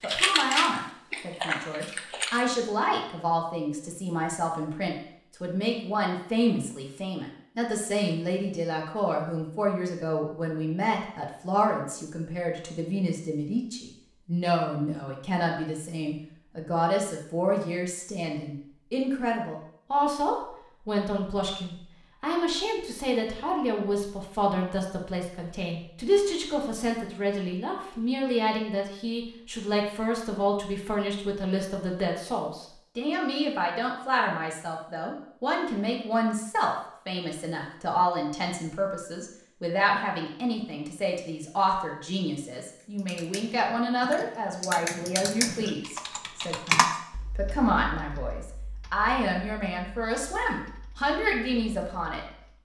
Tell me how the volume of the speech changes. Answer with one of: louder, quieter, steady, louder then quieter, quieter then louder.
steady.